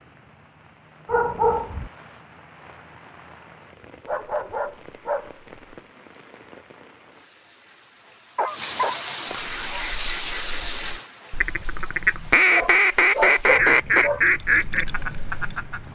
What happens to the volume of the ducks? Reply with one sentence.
The volume of the ducks goes up, then down.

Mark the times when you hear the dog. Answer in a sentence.
You can hear the dog from 1.1 to 1.9 s, from 4.0 to 5.6 s, from 8.3 to 9.9 s and from 12.5 to 14.2 s.